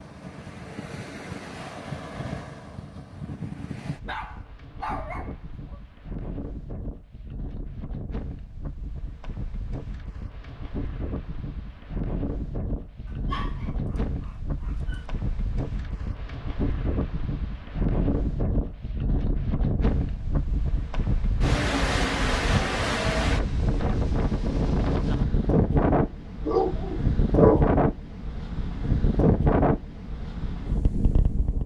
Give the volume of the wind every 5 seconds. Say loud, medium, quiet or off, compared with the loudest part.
quiet, quiet, medium, medium, loud, loud, medium.